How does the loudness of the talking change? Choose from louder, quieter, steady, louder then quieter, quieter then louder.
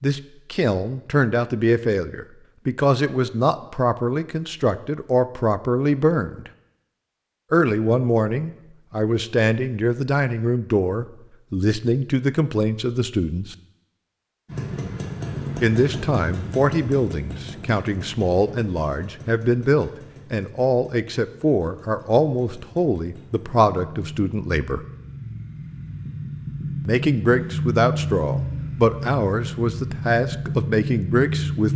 steady.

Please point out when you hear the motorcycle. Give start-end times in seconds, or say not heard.
14.4-31.7.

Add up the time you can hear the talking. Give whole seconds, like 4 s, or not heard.
27 s.